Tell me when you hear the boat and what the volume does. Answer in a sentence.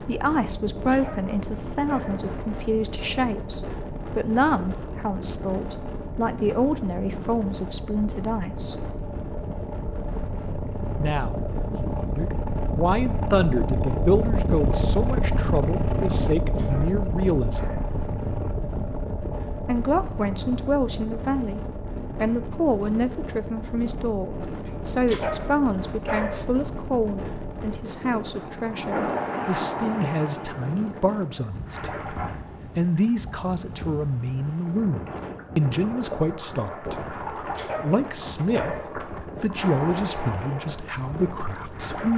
The boat can be heard from 0.0 to 42.1 s, getting louder then quieter.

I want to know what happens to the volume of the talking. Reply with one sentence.
The volume of the talking stays about the same.